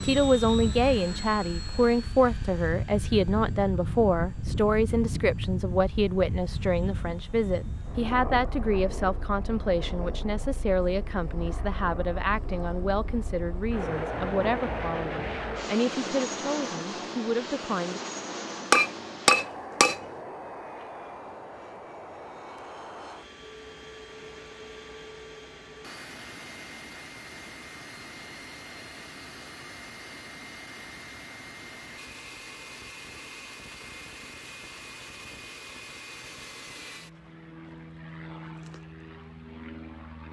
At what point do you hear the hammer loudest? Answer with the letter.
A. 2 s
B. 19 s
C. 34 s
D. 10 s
B.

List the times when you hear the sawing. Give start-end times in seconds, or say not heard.
not heard.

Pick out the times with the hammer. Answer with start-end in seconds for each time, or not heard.
18.7-20.0.